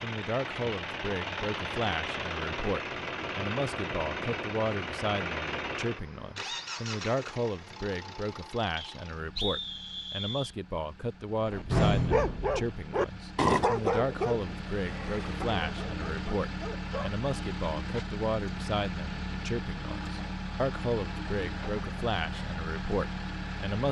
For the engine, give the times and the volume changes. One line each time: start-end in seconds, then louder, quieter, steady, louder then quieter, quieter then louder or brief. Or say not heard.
0.0-23.8 quieter then louder.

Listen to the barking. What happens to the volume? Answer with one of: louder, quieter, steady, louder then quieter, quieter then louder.
quieter.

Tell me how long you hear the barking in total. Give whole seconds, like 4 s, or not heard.
6 s.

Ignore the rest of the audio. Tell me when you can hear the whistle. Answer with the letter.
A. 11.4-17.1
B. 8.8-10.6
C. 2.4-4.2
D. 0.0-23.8
B.